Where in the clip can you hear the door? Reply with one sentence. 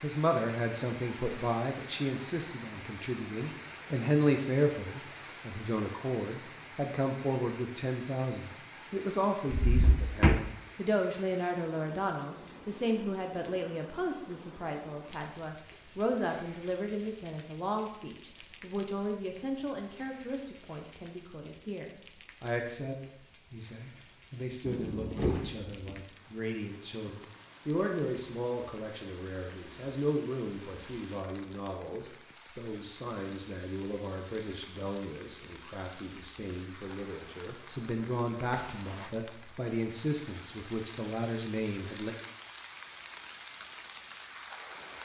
The door can be heard from 9.5 to 10.4 s and from 24.6 to 26.0 s.